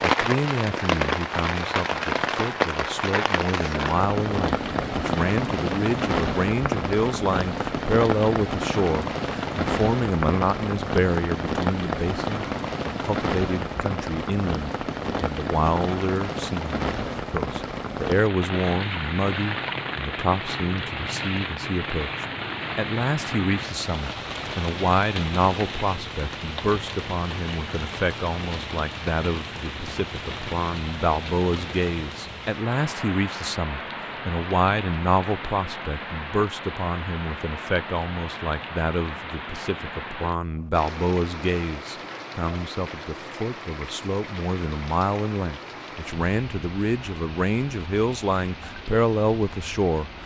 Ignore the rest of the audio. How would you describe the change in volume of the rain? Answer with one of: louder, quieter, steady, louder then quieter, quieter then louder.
quieter.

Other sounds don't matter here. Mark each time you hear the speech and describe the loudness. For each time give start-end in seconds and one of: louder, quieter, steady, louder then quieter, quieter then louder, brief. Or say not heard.
0.0-50.1 steady.